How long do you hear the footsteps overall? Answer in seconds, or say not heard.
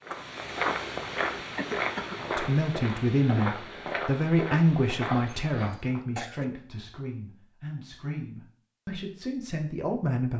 6 s.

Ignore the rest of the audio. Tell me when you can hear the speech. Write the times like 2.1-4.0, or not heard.
2.1-10.3.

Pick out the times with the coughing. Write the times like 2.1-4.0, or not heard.
1.6-2.2, 5.5-6.5.